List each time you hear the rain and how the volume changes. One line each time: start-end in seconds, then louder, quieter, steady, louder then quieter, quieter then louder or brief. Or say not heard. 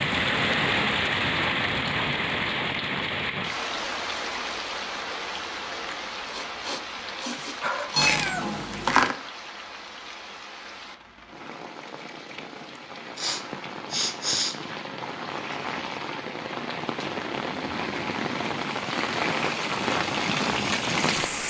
0.0-21.4 quieter then louder.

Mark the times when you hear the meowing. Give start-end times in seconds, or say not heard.
8.0-9.2.